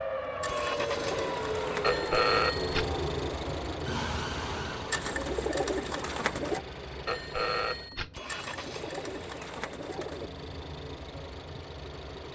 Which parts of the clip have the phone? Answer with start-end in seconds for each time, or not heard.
1.8-2.9, 7.0-8.1.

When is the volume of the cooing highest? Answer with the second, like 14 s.
6 s.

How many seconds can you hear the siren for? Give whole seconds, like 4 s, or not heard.
5 s.